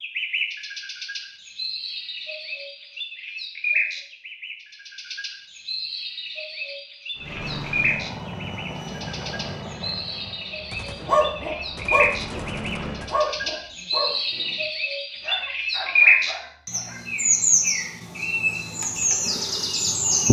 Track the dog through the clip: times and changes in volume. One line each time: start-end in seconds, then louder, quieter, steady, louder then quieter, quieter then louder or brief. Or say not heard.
11.1-17.1 quieter.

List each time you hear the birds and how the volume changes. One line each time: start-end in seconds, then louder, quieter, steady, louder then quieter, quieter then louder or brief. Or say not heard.
0.0-20.2 louder.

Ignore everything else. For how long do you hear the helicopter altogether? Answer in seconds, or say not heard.
6 s.